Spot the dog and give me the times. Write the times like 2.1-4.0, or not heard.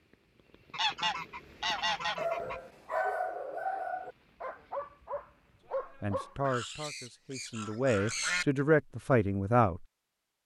2.1-6.3.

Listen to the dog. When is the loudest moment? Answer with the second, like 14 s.
3 s.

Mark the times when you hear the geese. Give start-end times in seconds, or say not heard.
0.7-2.6, 6.4-8.4.